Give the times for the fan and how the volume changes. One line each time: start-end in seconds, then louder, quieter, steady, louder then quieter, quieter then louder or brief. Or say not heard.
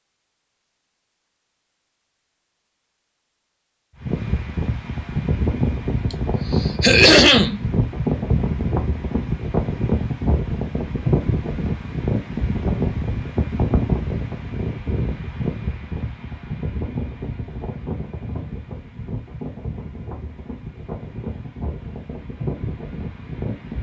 4.0-23.7 quieter.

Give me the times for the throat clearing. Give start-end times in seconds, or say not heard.
6.1-7.6.